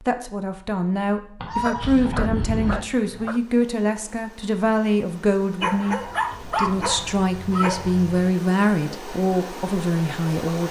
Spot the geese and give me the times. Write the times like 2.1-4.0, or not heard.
1.4-2.8, 6.1-7.3.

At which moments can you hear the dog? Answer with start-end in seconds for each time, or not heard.
1.6-3.4, 5.6-8.3.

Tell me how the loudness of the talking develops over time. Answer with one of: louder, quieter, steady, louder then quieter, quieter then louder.
steady.